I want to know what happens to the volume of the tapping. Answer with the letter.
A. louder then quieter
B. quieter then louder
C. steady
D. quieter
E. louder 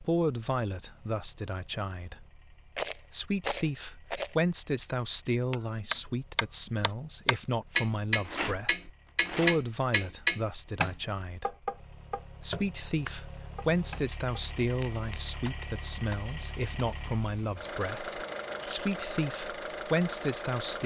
D.